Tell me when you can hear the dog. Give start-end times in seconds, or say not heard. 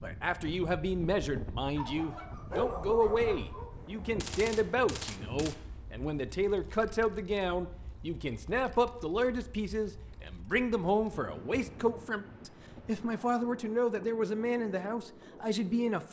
1.8-3.7.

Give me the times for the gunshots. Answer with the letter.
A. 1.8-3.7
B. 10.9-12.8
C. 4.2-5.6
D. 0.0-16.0
C.